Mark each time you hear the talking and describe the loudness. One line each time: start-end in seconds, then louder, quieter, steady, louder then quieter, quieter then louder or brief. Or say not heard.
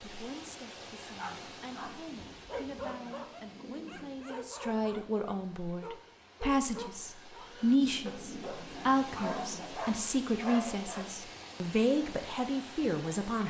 0.0-13.4 louder.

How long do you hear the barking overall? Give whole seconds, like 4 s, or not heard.
10 s.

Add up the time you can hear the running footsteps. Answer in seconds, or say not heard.
not heard.